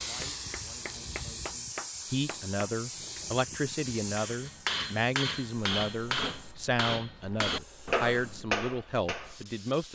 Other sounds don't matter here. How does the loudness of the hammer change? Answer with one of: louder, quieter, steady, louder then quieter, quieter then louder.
louder.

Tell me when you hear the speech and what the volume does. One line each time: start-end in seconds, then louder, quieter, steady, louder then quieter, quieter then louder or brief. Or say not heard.
0.0-9.9 louder.